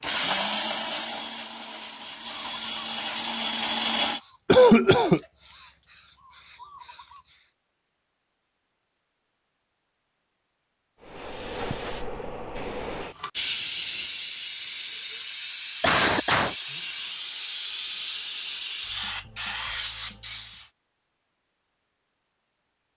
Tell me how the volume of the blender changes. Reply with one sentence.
The volume of the blender goes down, then up.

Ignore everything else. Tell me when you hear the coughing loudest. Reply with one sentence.
The volume of the coughing peaks at 5 seconds.